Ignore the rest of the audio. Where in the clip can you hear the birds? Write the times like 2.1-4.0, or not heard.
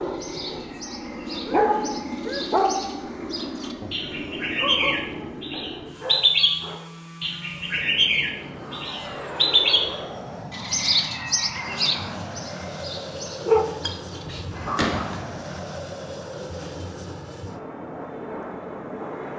0.0-14.4.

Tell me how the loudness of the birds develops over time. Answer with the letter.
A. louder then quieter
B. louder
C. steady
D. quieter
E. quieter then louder
A.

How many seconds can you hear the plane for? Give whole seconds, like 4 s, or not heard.
19 s.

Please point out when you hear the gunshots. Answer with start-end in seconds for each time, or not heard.
14.8-15.2.